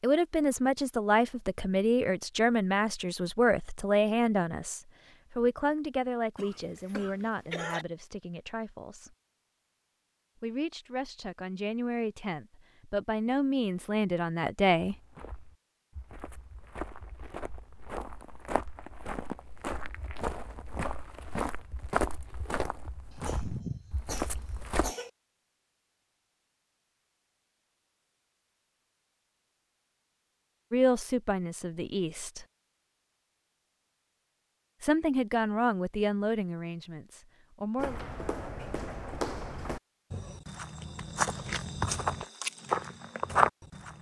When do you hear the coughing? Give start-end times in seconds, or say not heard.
6.3-7.8, 23.1-25.1.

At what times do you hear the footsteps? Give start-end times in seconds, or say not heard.
14.8-24.9, 37.8-43.9.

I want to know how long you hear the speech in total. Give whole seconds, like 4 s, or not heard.
19 s.